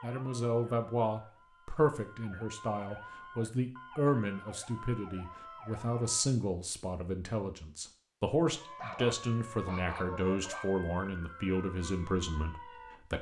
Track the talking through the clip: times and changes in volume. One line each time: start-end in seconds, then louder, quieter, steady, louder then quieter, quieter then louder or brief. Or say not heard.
0.0-13.1 steady.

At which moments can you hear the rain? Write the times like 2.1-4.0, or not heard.
not heard.